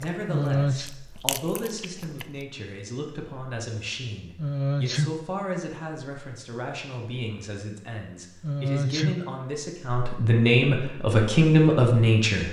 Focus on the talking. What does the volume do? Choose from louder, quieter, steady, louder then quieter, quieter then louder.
louder.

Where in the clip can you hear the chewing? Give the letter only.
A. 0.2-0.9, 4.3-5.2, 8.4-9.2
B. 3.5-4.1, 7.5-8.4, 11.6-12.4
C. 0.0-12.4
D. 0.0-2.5
D.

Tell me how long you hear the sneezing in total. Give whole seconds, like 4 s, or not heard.
2 s.